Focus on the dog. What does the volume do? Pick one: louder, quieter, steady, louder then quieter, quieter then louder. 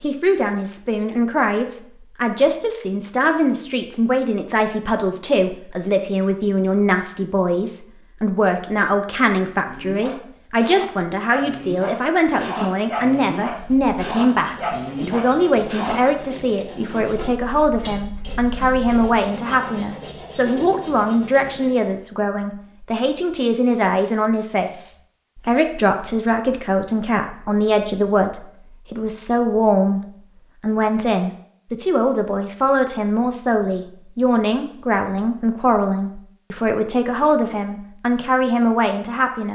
louder.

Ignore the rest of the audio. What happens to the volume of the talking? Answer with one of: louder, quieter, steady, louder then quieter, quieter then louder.
steady.